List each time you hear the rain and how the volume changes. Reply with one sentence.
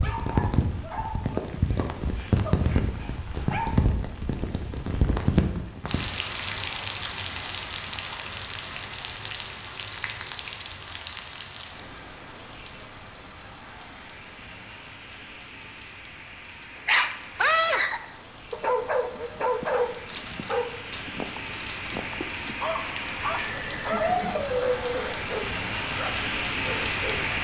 You can hear the rain from 0.0 to 27.3 s, getting quieter then louder.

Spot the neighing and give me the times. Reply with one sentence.
You can hear the neighing from 23.4 to 25.0 s.